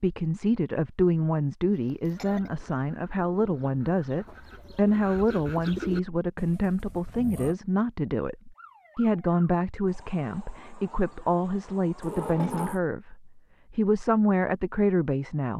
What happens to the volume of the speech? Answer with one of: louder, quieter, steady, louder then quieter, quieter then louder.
steady.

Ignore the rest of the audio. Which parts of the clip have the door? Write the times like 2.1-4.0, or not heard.
12.0-12.8.